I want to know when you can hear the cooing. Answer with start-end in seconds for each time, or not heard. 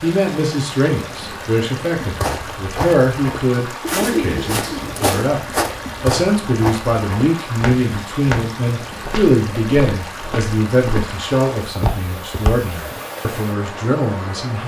3.8-5.2.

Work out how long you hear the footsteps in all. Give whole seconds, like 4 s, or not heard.
11 s.